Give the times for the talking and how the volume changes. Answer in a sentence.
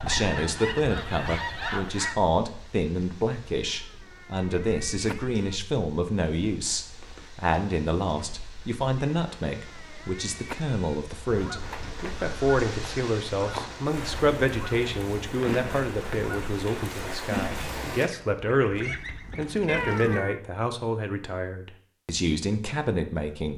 You can hear the talking from 0.0 to 23.5 s, at a steady volume.